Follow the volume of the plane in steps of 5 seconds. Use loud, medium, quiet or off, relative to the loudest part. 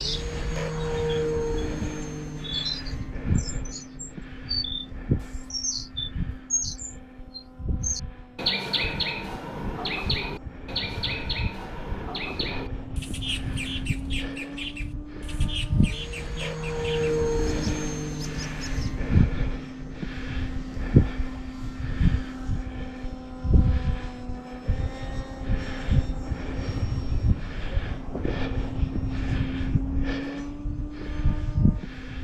loud, medium, medium, loud, loud, loud, loud.